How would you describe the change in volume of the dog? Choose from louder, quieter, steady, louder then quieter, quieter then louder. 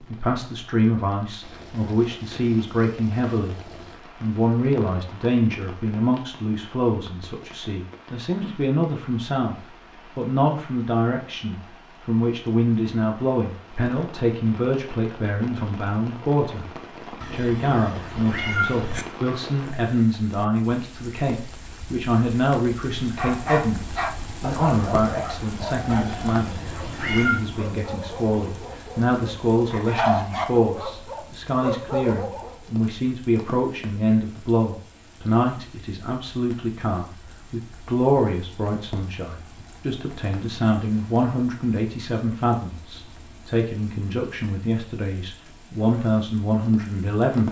quieter then louder.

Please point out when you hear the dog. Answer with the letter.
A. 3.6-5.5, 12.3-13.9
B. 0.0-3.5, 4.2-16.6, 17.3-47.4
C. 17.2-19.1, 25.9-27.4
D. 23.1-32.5
D.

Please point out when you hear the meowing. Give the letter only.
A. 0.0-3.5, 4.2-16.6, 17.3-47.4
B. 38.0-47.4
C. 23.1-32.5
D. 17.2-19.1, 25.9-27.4
D.